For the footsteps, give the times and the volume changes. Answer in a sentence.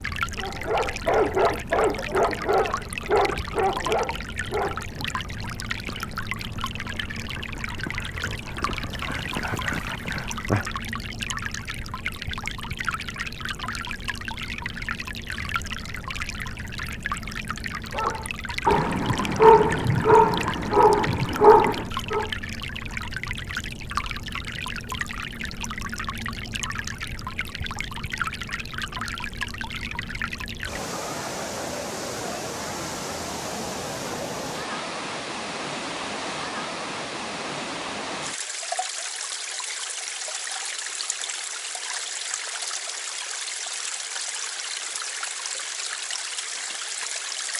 The footsteps can't be heard in this clip.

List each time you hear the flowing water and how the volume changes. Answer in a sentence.
You can hear the flowing water from 0.0 to 47.5 s, at a steady volume.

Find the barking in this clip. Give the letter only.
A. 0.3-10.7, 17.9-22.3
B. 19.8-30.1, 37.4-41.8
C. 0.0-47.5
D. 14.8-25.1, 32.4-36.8
A.